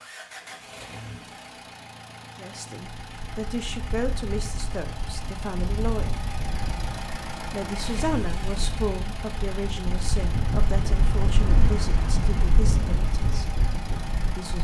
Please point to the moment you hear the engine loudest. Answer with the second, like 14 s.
8 s.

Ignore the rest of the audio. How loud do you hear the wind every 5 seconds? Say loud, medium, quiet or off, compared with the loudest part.
medium, medium, loud.